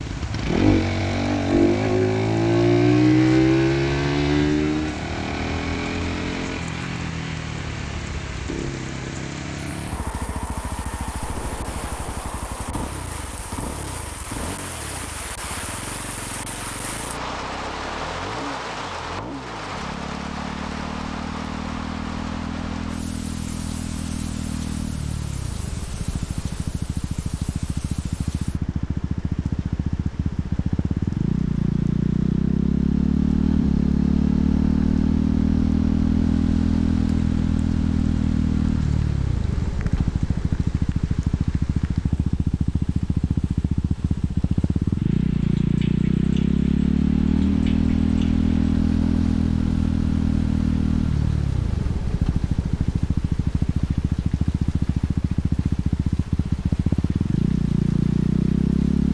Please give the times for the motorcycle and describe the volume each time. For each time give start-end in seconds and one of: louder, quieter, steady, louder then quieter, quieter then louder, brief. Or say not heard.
0.0-59.0 quieter then louder.